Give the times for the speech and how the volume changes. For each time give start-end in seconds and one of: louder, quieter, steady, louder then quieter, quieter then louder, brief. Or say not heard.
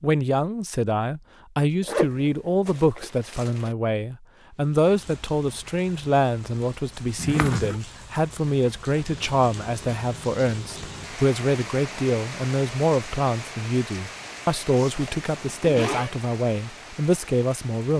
0.0-17.9 steady.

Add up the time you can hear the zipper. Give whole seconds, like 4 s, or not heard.
4 s.